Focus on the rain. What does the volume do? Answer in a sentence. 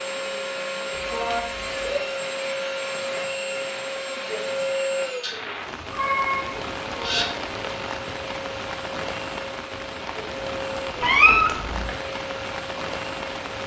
The volume of the rain goes up.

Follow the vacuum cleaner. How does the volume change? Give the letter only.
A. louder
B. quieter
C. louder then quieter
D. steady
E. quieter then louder
B.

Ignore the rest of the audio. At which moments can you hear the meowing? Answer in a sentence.
The meowing can be heard from 0.9 to 2.0 s, from 5.2 to 7.2 s and from 11.0 to 11.9 s.